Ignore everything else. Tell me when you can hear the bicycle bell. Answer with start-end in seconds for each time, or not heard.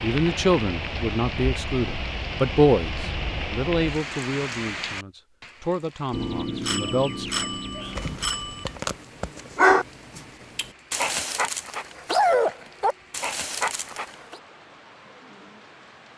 6.1-8.8.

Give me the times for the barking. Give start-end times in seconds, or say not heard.
7.8-14.3.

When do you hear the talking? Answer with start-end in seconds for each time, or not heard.
0.0-7.2.